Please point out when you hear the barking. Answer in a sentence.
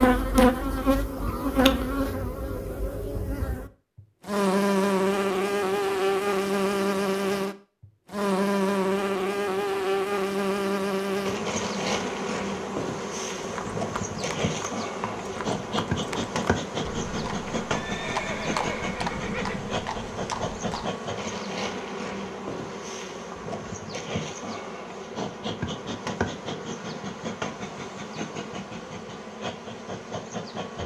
You can't hear the barking here.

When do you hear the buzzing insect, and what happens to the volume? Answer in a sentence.
You can hear the buzzing insect from 0.0 to 30.8 s, getting quieter.